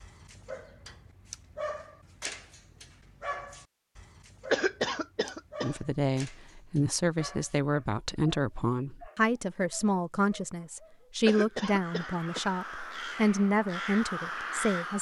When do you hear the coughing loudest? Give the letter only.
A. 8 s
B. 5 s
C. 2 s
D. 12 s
B.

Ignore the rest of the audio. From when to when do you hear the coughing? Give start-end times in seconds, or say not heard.
4.5-5.7, 11.2-12.4.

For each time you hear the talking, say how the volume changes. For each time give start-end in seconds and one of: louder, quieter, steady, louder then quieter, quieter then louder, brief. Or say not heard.
5.6-14.9 steady.